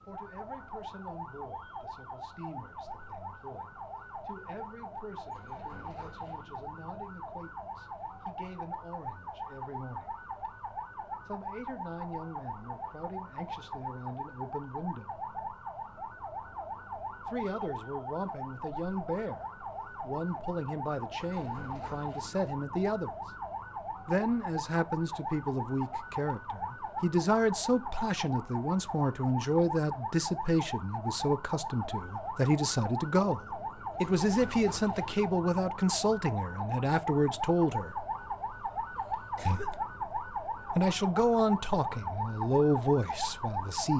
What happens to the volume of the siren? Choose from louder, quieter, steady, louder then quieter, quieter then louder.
louder.